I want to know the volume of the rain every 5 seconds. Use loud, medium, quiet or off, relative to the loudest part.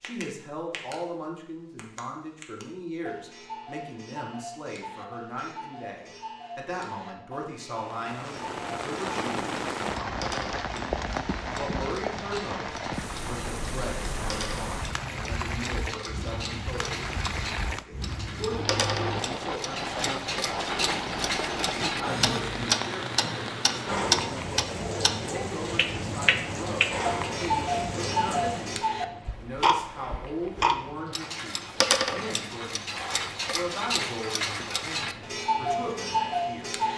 off, loud, loud, loud, loud, loud, quiet, quiet.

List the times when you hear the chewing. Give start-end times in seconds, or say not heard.
not heard.